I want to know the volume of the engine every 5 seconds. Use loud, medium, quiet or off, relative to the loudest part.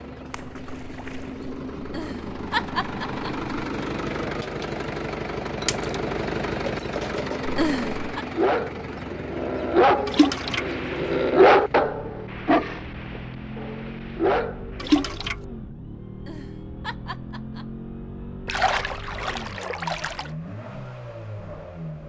loud, loud, medium, medium, medium.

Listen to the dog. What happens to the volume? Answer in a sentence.
The volume of the dog goes up, then down.